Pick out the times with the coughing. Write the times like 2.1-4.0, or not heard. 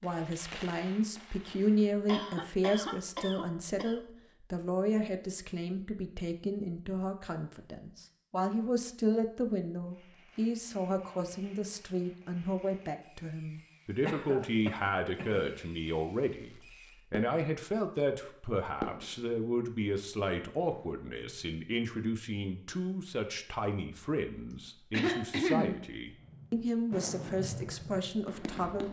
2.0-4.0, 14.1-15.4, 24.5-25.9.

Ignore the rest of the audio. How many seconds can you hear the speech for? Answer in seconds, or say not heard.
29 s.